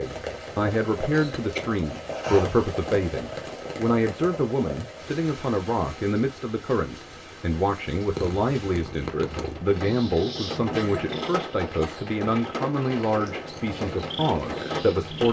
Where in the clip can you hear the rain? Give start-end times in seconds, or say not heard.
0.0-15.2.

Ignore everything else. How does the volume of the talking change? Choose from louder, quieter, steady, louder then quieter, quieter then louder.
steady.